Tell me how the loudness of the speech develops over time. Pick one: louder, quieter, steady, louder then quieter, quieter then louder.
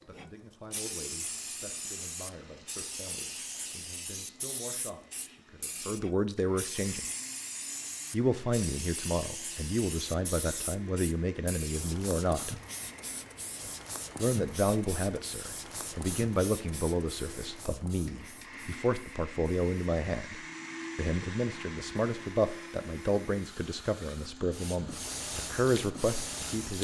louder.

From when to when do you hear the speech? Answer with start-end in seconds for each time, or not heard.
0.1-7.0, 8.1-12.6, 14.2-26.8.